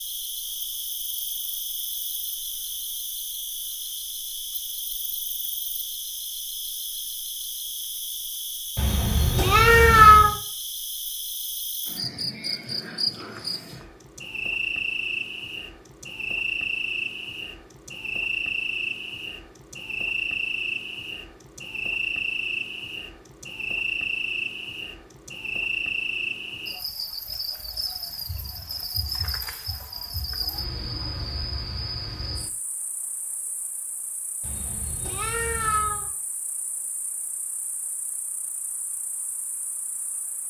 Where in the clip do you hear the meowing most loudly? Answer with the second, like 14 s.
10 s.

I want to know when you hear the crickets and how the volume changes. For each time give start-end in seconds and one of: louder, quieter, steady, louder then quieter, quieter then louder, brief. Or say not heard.
0.0-40.4 louder then quieter.